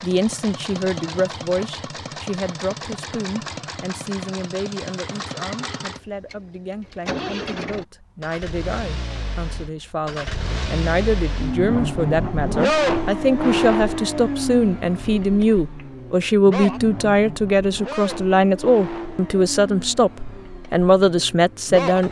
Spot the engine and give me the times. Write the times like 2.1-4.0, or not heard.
0.0-22.0.